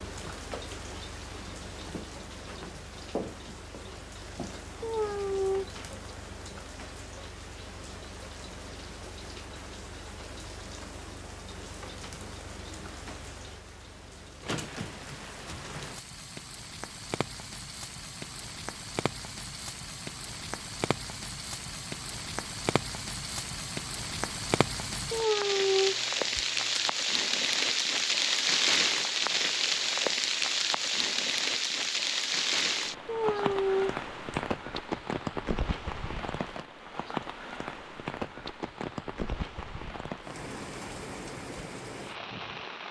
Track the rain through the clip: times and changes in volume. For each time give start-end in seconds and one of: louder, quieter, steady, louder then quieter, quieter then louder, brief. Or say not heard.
0.0-42.8 louder then quieter.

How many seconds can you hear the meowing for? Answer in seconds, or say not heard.
4 s.